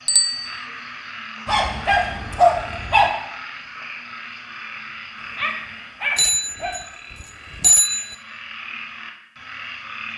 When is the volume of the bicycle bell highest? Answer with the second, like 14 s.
8 s.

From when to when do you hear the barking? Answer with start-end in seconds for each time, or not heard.
1.4-3.1, 5.2-6.8.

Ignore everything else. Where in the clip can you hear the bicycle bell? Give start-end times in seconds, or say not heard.
0.1-0.6, 6.2-8.2.